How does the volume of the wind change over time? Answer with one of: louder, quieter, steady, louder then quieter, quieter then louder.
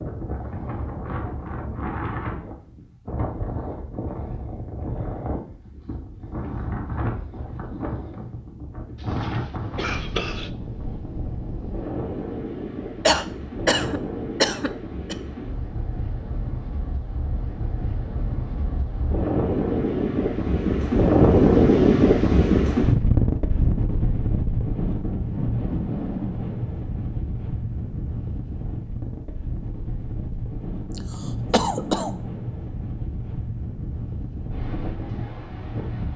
louder then quieter.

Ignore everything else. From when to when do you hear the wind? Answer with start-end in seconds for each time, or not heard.
0.0-36.1.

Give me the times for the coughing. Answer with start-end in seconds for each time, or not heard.
9.2-10.5, 13.1-15.2, 30.9-32.1.